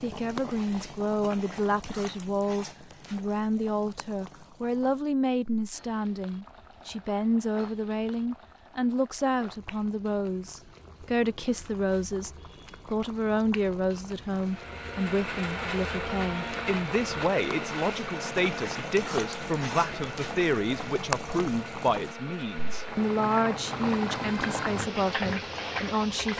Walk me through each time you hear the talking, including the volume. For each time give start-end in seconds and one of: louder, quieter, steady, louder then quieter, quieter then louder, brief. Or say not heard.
0.0-26.3 steady.